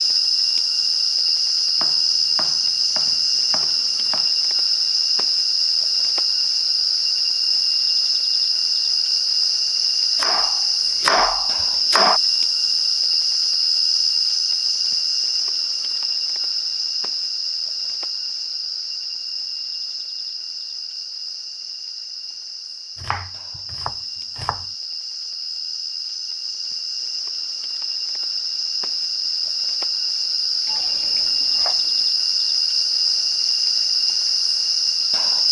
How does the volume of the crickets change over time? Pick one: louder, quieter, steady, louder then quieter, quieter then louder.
quieter then louder.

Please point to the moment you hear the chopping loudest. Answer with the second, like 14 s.
11 s.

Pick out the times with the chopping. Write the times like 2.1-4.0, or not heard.
1.8-4.3, 10.2-12.2, 23.0-24.6, 30.6-31.9.